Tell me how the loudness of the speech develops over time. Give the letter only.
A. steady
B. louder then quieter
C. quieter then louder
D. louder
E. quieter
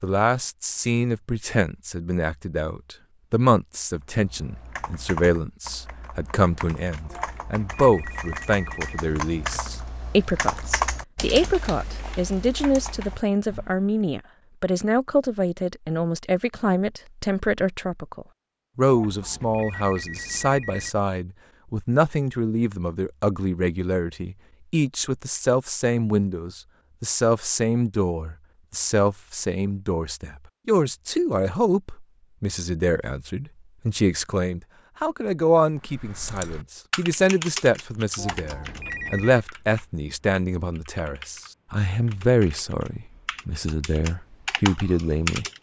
A.